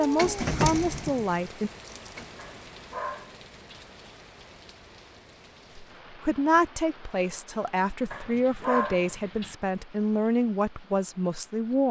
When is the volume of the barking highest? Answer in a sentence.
The loudest moment of the barking is at 9 seconds.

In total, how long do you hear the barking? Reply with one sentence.
The barking can be heard for 3 seconds in total.